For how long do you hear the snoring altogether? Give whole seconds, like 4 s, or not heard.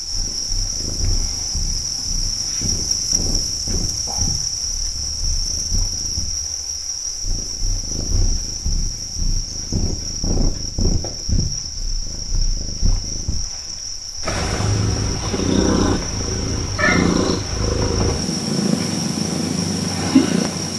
not heard.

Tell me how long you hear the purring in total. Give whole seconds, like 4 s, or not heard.
21 s.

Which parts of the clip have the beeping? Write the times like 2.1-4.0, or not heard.
not heard.